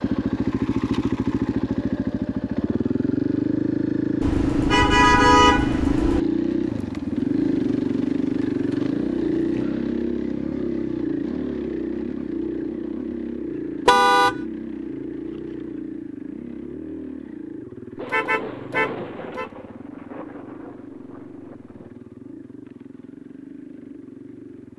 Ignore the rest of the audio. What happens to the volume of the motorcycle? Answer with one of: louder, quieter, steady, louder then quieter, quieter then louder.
quieter.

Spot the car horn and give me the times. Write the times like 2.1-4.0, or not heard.
4.2-6.2, 13.8-14.4, 18.1-19.4.